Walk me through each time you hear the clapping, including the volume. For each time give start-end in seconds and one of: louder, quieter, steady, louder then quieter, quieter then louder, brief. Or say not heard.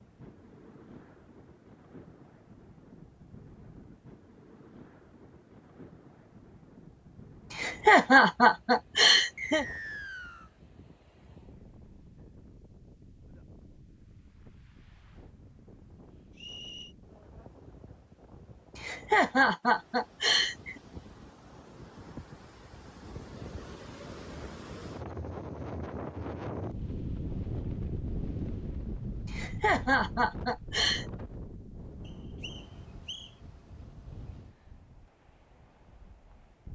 not heard.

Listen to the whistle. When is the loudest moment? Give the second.
10 s.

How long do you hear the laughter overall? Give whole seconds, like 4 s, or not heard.
6 s.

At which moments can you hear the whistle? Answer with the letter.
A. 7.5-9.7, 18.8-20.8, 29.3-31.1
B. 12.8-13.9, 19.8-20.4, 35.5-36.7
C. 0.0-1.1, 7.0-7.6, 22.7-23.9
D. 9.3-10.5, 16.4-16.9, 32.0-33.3
D.